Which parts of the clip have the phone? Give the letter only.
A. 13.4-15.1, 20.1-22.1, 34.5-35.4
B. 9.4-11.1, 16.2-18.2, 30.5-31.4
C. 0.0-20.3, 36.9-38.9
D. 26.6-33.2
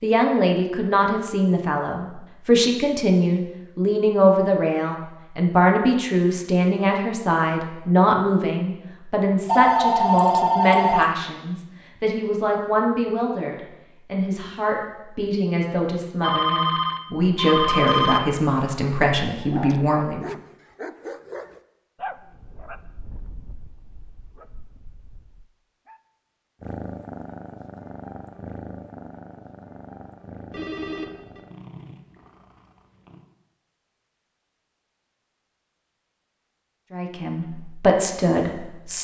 B.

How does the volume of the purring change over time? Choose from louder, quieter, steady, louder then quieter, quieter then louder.
quieter.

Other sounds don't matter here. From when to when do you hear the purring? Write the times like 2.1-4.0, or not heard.
26.6-33.2.